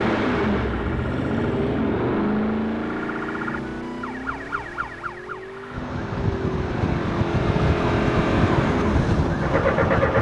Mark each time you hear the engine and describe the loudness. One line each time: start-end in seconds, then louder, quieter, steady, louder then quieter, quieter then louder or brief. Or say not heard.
0.0-10.1 quieter then louder.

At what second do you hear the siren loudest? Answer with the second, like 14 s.
8 s.